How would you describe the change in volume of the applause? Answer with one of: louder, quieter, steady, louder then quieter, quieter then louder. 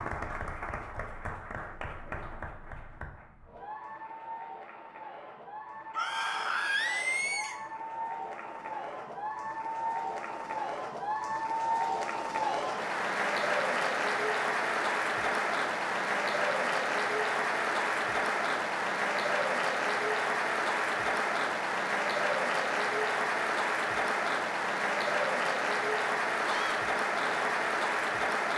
louder.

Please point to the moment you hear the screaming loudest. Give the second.
7 s.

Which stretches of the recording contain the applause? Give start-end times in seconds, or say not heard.
0.0-28.5.